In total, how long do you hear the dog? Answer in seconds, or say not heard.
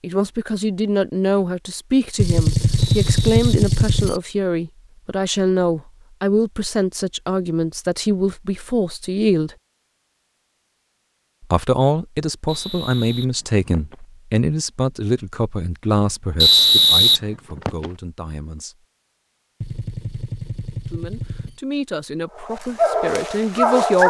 2 s.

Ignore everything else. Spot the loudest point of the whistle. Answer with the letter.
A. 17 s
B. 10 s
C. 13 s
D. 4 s
A.